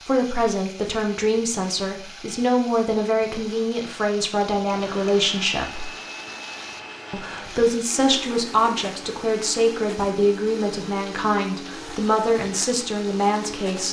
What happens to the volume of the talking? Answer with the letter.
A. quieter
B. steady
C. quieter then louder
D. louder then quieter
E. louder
B.